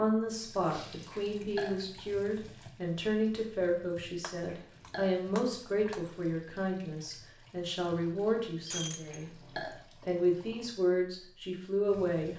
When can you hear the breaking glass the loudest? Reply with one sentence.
The loudest moment of the breaking glass is at 9 seconds.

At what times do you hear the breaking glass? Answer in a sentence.
You can hear the breaking glass from 0.7 to 1.2 s, from 4.2 to 6.0 s and from 8.7 to 9.2 s.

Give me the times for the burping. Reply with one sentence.
You can hear the burping from 1.1 to 1.8 s, from 4.5 to 5.2 s and from 9.1 to 9.8 s.